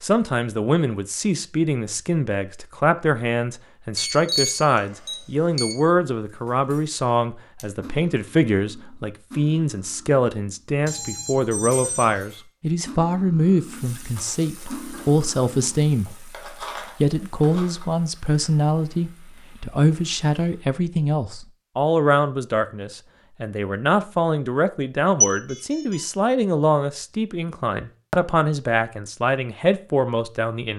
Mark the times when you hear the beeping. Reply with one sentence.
The beeping can be heard from 4.0 to 5.8 s, from 10.8 to 12.2 s and from 25.2 to 26.1 s.